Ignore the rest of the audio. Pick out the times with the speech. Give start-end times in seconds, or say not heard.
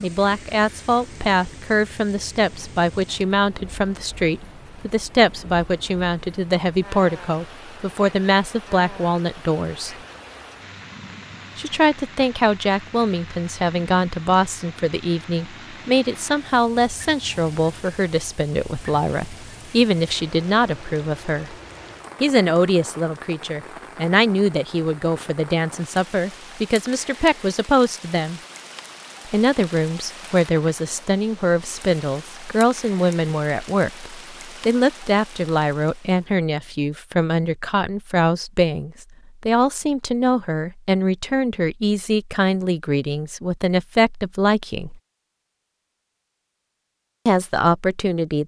0.0-9.9, 11.6-21.6, 22.2-28.4, 29.2-45.0, 47.2-48.4.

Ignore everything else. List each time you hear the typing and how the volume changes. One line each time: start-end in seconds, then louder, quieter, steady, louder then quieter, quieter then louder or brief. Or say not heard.
not heard.